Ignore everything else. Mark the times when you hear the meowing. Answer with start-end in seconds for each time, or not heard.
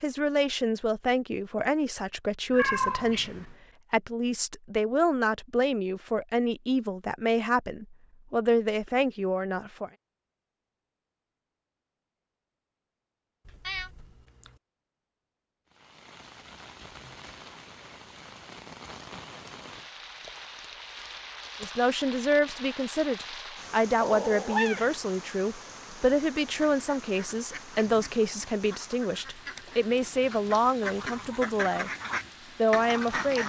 2.5-3.5, 13.4-14.6, 24.0-24.9.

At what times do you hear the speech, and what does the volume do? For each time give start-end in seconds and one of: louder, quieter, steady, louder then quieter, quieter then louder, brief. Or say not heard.
0.0-9.9 steady
21.6-31.9 steady
32.5-33.4 brief.